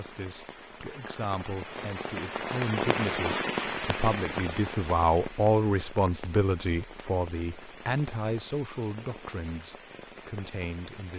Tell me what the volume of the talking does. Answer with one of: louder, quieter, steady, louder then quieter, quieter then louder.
louder then quieter.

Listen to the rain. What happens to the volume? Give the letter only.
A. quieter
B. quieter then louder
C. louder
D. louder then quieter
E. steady
D.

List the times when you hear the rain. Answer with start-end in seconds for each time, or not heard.
0.0-11.1.